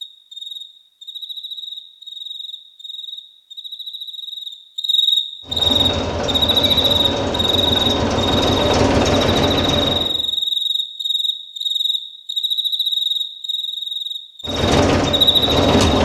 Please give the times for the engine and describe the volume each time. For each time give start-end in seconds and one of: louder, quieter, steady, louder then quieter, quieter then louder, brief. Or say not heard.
5.5-10.1 louder
14.4-16.0 brief.